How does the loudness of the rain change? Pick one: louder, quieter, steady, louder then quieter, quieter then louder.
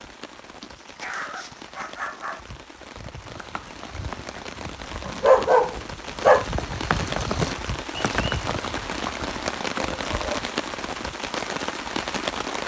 louder.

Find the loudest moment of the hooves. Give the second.
7 s.